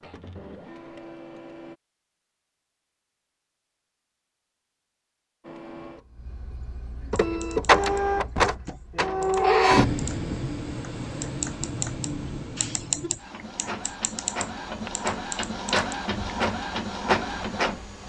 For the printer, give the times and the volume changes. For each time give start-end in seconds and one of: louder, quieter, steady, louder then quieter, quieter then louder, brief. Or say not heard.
0.0-1.8 brief
5.4-18.0 quieter then louder.